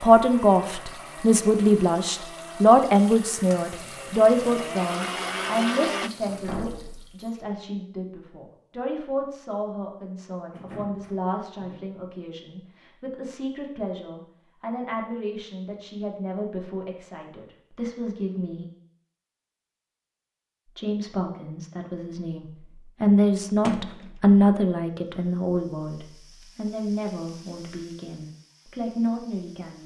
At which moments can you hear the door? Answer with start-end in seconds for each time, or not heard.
6.4-7.2, 10.5-11.8, 23.6-24.1.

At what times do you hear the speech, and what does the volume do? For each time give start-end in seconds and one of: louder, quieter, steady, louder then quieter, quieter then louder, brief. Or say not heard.
0.0-18.6 quieter
20.8-29.8 louder then quieter.